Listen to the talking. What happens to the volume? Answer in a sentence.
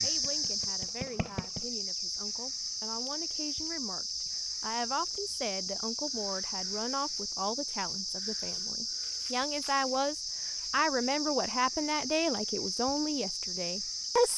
The loudness of the talking goes up.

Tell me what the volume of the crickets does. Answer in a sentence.
The loudness of the crickets stays about the same.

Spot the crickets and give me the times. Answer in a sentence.
You can hear the crickets from 0.0 to 14.3 s.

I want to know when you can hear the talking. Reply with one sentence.
You can hear the talking from 0.0 to 14.3 s.